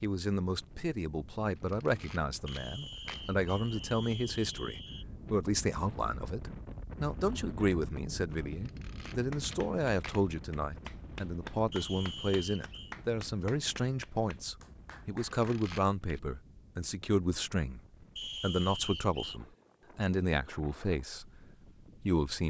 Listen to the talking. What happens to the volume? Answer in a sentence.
The volume of the talking stays about the same.